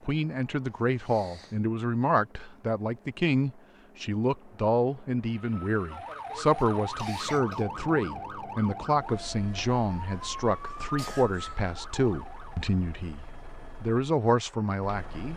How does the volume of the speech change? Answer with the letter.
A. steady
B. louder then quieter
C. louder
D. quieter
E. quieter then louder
A.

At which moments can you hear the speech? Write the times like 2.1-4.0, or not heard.
0.1-15.3.